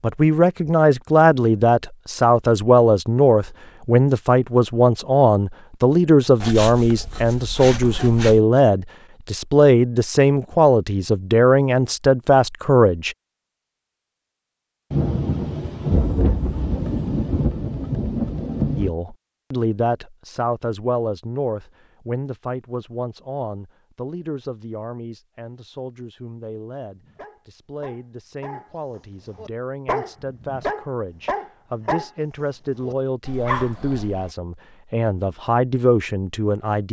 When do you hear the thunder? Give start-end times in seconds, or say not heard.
14.9-18.9.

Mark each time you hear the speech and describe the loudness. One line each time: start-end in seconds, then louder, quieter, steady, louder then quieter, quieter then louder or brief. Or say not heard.
0.0-13.2 steady
18.8-36.8 quieter then louder.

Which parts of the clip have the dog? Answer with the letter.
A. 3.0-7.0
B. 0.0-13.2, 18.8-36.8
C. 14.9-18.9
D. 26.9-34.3
D.